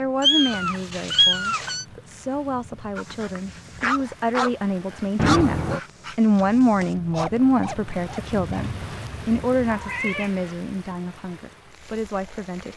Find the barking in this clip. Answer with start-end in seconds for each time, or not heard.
3.0-8.7.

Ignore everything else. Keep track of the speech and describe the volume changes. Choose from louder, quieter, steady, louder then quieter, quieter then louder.
louder then quieter.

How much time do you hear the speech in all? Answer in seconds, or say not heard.
13 s.